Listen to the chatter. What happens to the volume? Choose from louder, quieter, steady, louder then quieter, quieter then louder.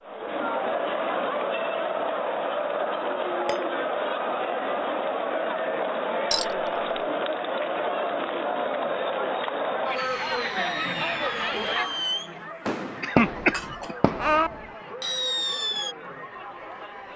quieter.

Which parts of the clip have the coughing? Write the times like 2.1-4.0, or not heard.
13.0-14.0.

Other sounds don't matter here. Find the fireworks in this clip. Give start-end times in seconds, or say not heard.
9.9-15.9.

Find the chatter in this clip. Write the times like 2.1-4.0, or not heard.
0.0-17.1.